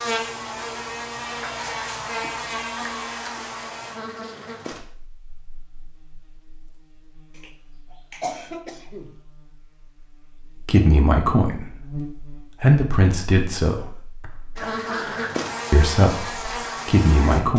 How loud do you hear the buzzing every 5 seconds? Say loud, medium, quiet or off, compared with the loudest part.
loud, quiet, medium, loud.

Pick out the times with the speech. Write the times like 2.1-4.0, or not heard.
10.7-11.7, 12.6-13.8, 15.7-17.5.